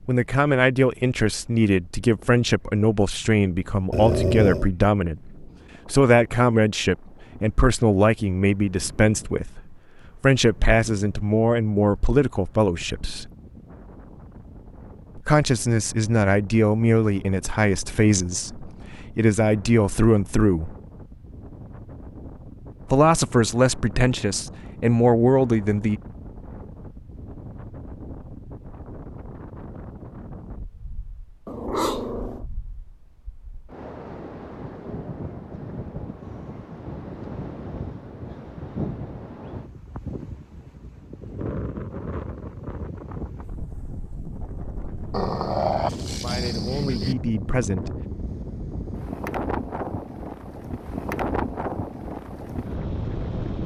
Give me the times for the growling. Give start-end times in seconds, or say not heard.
3.9-4.7, 31.4-32.5, 45.1-47.1.